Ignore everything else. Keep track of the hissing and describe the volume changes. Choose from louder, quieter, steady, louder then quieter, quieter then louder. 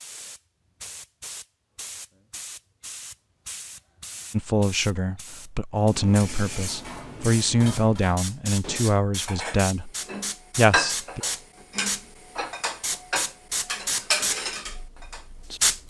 louder.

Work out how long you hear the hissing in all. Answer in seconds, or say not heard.
16 s.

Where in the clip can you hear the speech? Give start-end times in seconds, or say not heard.
4.3-9.9, 10.6-11.2.